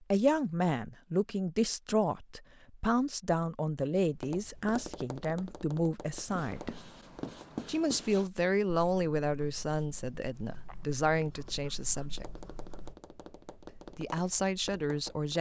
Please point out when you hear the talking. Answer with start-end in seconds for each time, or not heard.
0.1-6.8, 7.7-12.2, 13.9-15.3.